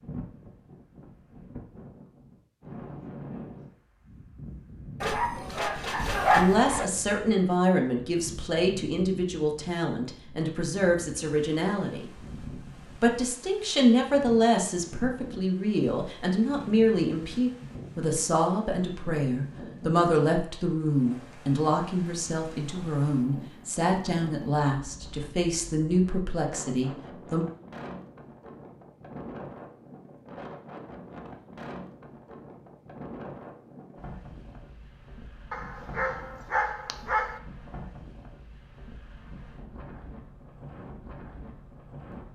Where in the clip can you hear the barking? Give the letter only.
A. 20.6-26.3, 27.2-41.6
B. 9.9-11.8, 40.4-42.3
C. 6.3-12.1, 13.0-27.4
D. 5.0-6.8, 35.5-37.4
D.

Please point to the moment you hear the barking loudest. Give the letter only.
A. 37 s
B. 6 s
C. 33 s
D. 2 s
B.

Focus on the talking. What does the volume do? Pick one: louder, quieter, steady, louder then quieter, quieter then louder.
steady.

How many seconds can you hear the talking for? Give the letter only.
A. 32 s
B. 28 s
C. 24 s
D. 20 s
D.